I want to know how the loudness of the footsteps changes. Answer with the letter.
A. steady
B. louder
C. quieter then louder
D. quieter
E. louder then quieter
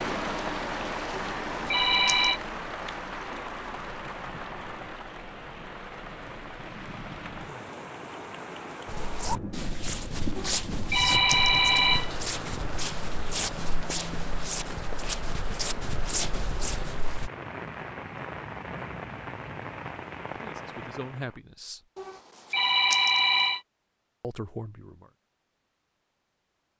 A.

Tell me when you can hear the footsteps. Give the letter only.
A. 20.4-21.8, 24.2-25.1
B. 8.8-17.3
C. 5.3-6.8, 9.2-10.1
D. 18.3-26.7
B.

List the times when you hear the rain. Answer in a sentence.
The rain can be heard from 0.0 to 21.4 s.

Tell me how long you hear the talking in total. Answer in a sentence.
The talking can be heard for 2 seconds in total.